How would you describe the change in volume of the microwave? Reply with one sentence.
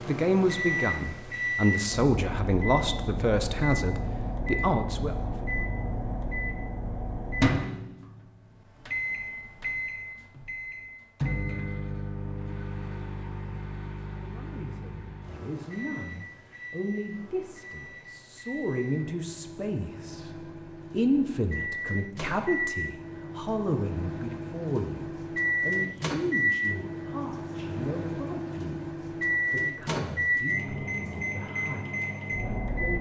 The loudness of the microwave goes down, then up.